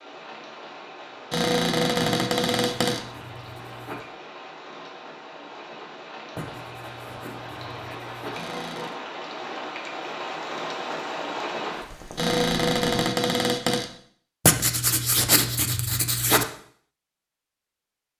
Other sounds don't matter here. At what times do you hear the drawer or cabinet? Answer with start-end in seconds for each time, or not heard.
1.3-3.0, 8.3-8.9, 12.2-13.8.